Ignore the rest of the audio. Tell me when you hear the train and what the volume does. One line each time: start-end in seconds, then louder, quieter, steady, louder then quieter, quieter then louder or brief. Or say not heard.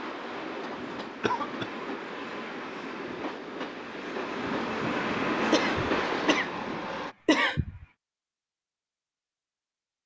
0.0-7.2 louder.